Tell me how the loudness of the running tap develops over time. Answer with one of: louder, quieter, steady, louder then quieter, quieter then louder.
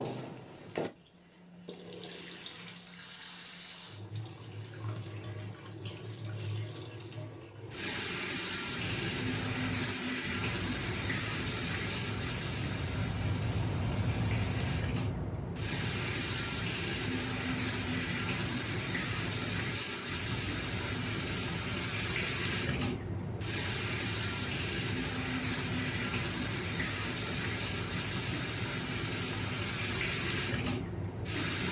louder.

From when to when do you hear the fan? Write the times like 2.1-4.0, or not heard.
8.6-31.6.